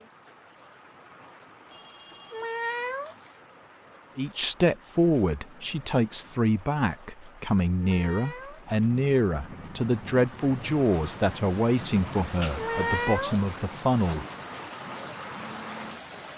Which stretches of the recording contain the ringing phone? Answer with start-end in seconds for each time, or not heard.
1.7-2.6.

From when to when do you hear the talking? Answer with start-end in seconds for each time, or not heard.
4.2-14.2.